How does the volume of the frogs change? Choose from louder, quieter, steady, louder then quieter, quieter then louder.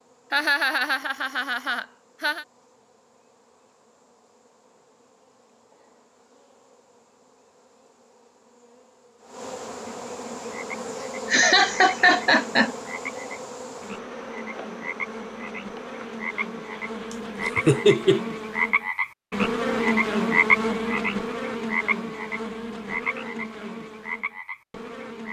louder then quieter.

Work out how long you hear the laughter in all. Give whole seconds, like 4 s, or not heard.
5 s.